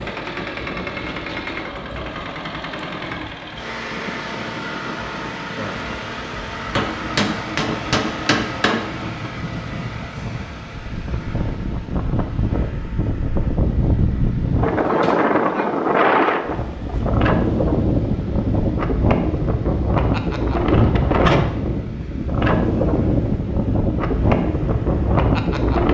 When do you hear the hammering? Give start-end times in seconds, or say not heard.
6.7-9.3.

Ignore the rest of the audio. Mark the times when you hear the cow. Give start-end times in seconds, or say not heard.
not heard.